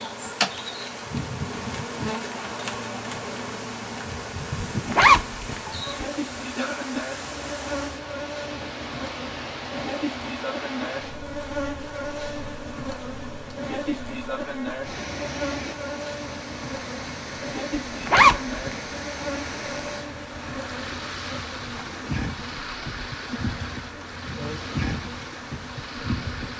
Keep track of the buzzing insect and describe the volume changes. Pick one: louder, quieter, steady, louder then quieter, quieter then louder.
steady.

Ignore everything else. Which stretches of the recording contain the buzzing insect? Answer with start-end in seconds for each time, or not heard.
0.0-26.5.